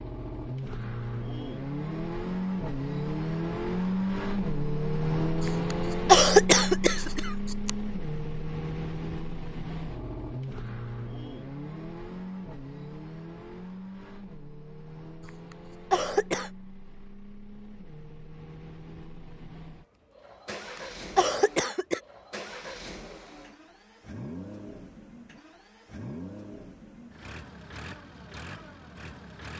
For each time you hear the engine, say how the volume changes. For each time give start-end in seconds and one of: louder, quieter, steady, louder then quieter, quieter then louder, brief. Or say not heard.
0.0-29.5 quieter.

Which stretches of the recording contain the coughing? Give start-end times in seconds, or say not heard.
5.5-7.7, 15.2-16.5, 20.8-22.0.